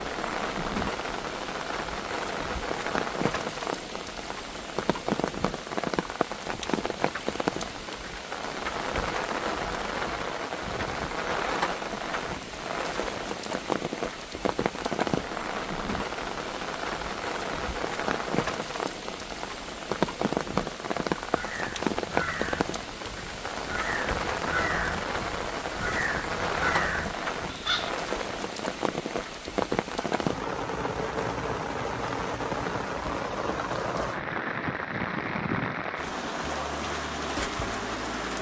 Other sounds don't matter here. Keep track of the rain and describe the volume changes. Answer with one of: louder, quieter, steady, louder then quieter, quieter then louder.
steady.